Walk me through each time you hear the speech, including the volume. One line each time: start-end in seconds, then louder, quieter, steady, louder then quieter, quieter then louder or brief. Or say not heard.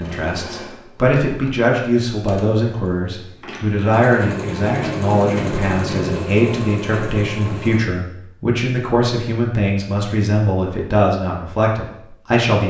0.0-12.6 steady.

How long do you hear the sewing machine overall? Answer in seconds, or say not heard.
8 s.